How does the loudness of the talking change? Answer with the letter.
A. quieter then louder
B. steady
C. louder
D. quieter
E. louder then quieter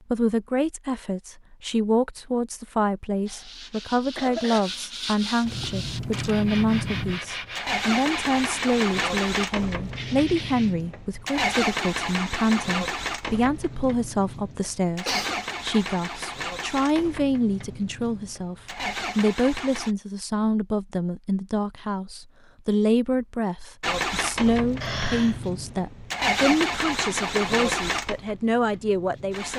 B.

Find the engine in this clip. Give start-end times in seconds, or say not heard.
5.5-19.9, 23.8-29.5.